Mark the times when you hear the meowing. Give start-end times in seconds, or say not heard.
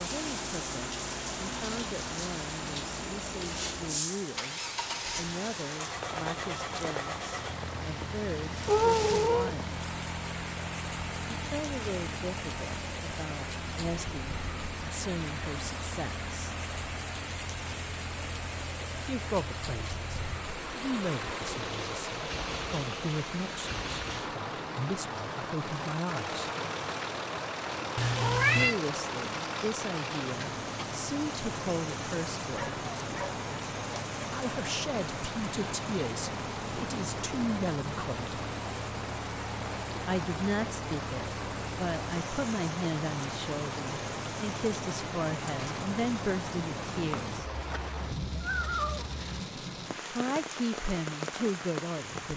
8.7-9.6, 27.9-28.8, 47.4-49.3.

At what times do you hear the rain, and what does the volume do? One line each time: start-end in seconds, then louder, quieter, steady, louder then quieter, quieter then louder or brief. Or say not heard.
0.0-52.3 steady.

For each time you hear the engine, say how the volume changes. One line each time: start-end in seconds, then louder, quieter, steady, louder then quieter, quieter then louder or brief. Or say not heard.
0.0-47.5 steady.